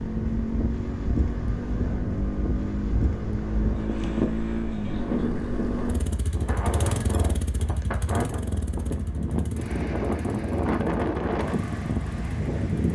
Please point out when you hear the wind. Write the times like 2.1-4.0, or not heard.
0.0-12.9.